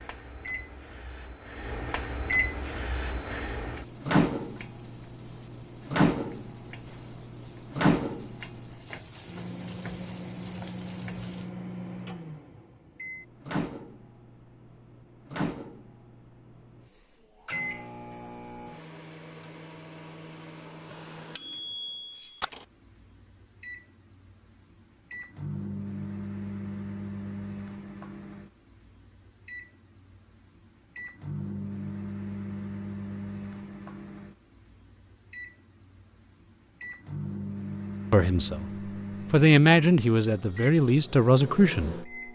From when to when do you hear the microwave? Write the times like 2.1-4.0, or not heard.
0.0-42.3.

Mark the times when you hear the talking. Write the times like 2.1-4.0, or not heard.
38.1-38.7, 39.3-42.0.